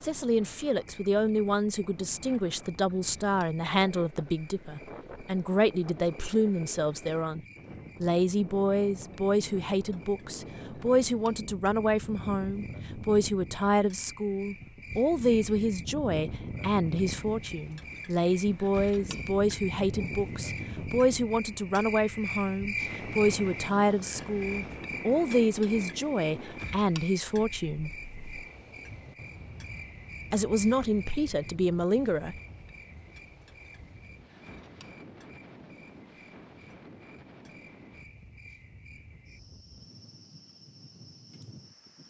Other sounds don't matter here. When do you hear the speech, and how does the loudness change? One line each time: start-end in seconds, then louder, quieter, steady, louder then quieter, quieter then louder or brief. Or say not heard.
0.0-7.4 steady
8.0-27.9 steady
30.3-32.4 brief.